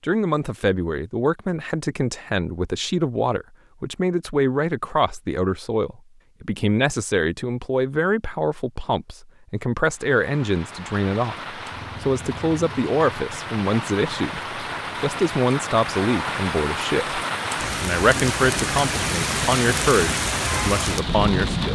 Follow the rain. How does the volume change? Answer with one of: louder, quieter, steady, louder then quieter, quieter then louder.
louder.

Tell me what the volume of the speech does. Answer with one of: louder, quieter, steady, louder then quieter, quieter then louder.
steady.